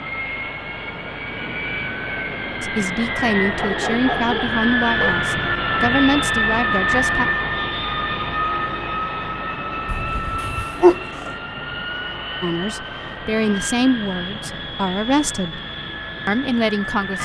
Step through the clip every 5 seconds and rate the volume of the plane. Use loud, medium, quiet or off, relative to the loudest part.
loud, loud, medium, medium.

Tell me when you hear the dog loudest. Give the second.
11 s.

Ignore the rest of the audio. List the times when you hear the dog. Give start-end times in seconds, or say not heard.
3.5-5.2, 9.8-11.3.